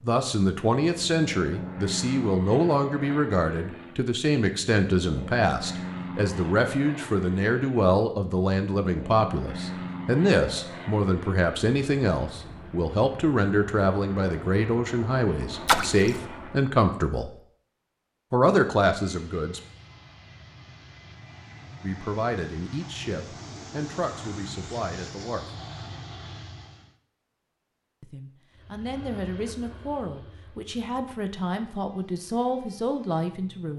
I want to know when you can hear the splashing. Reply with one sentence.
You can hear the splashing from 15.7 to 16.2 s.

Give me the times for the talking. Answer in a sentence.
You can hear the talking from 0.0 to 17.3 s, from 18.3 to 19.6 s, from 21.8 to 25.5 s and from 28.0 to 33.7 s.